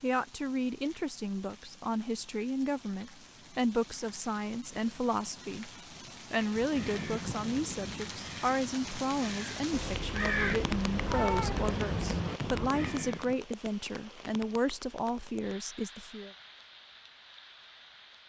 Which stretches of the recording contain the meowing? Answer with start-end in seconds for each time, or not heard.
9.7-11.8.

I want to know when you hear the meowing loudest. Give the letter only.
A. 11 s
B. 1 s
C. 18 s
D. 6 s
A.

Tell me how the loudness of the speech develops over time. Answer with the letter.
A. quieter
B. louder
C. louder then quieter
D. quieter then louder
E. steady
E.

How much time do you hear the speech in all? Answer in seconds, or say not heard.
16 s.